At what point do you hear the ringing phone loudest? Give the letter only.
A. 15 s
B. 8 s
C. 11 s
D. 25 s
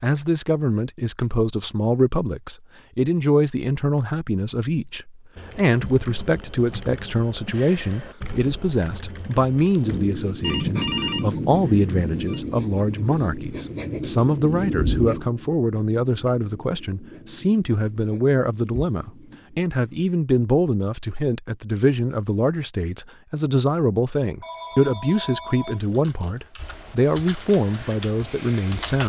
C.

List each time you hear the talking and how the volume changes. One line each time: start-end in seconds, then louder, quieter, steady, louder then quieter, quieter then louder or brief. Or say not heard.
0.0-29.0 steady.